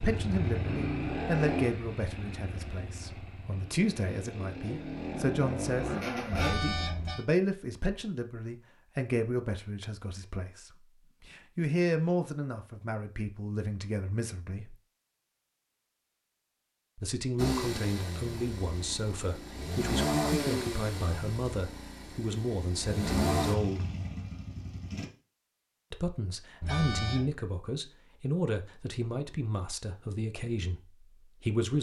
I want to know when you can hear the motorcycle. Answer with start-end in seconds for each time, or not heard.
0.0-6.5, 17.4-25.1.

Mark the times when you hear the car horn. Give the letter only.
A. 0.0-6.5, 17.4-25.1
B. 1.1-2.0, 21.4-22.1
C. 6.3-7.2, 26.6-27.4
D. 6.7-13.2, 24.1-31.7
C.